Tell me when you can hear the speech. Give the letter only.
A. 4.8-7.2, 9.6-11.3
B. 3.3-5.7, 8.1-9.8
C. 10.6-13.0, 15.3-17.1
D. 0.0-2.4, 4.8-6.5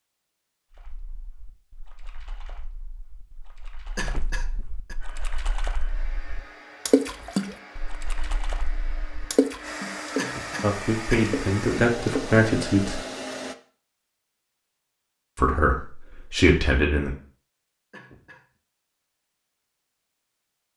C.